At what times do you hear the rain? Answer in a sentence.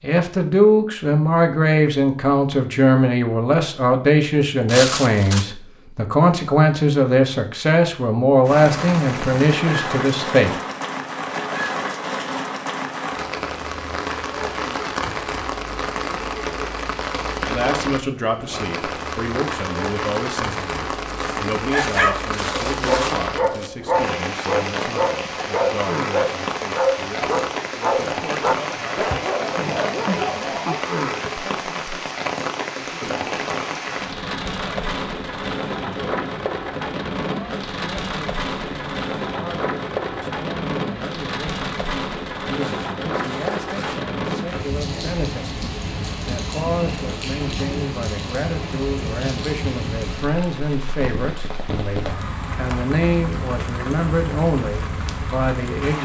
You can hear the rain from 8.4 to 56.0 s.